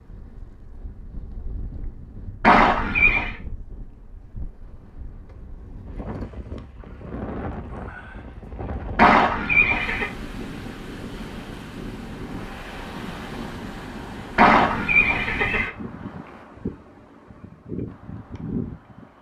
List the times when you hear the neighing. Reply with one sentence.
The neighing can be heard from 2.4 to 3.4 s, from 8.9 to 10.1 s and from 14.3 to 15.7 s.